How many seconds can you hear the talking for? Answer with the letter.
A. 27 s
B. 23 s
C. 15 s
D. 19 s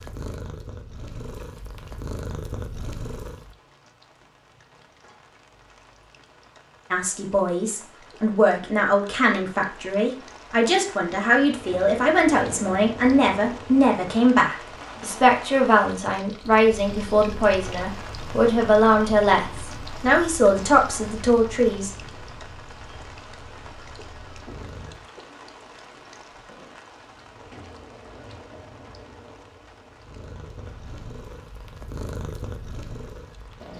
C.